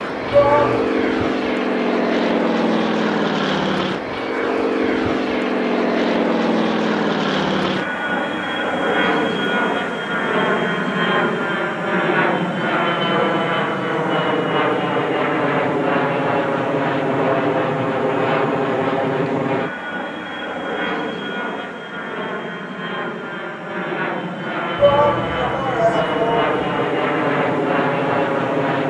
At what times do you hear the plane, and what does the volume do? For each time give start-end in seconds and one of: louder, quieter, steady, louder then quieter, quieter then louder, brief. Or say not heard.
0.0-28.8 steady.